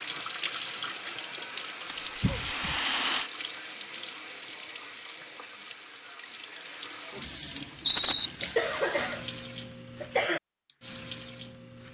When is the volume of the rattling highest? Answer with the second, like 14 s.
8 s.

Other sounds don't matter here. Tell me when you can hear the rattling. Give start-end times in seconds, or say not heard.
1.9-3.3, 7.8-8.3.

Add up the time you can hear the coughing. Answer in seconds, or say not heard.
2 s.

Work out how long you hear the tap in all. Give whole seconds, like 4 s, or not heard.
12 s.